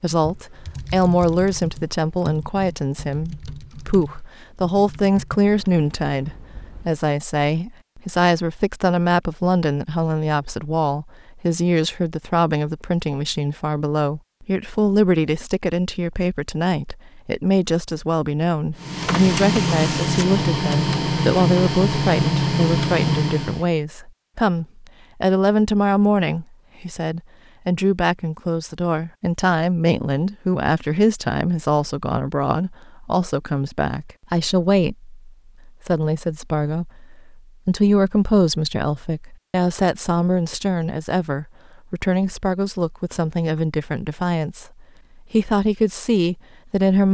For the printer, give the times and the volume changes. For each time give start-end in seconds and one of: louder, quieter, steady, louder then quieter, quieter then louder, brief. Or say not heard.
18.8-23.7 steady.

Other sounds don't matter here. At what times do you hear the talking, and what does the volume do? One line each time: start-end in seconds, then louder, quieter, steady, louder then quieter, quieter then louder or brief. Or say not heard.
0.0-47.1 steady.